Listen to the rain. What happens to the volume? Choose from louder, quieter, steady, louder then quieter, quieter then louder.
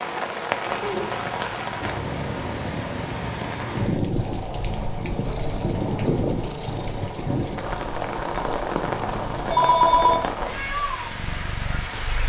steady.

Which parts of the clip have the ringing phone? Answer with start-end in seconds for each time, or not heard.
9.5-10.2.